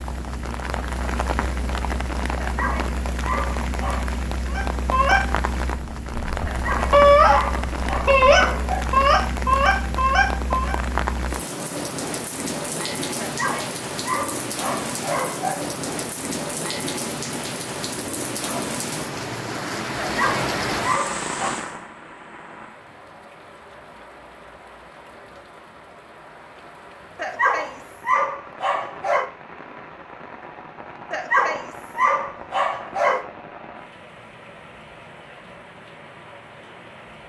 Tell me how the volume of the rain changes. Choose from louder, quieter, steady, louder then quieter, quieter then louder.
quieter.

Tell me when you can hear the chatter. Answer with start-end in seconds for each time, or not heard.
not heard.